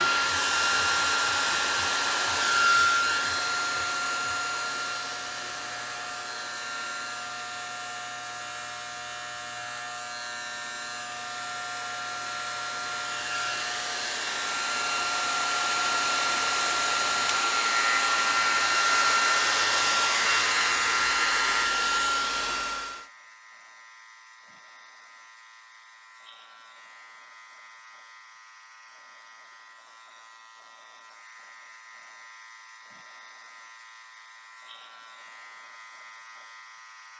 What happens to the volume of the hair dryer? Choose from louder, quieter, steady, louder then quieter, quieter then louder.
quieter then louder.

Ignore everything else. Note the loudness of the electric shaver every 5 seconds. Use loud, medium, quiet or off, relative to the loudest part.
medium, medium, medium, loud, loud, quiet, quiet, quiet.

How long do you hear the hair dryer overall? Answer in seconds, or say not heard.
23 s.